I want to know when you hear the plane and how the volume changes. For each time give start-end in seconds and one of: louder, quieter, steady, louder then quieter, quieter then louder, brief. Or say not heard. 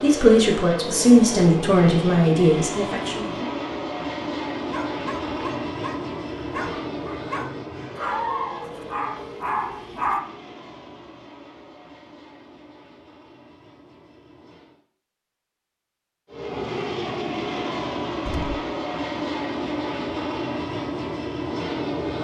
0.0-14.8 quieter
16.2-22.1 steady.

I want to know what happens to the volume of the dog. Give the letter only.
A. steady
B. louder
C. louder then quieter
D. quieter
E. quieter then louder
B.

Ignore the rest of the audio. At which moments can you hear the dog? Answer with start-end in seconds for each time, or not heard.
4.7-10.2.